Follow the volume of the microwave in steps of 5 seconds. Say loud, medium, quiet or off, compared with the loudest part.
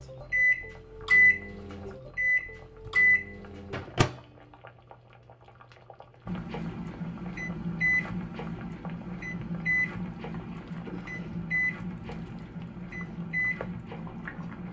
loud, medium, medium.